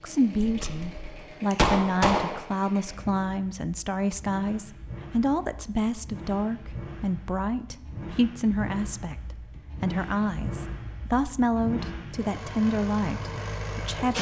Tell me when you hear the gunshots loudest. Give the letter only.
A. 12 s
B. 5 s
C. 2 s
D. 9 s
C.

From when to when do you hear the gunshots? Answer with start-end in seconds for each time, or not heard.
0.4-2.4.